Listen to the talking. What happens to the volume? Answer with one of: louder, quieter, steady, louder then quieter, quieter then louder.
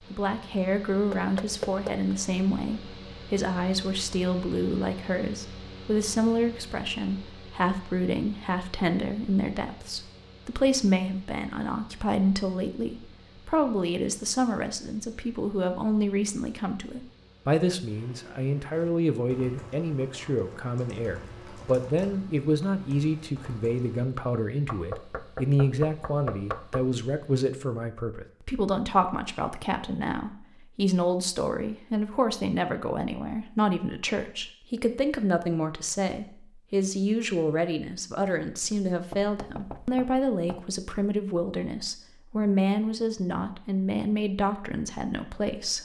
steady.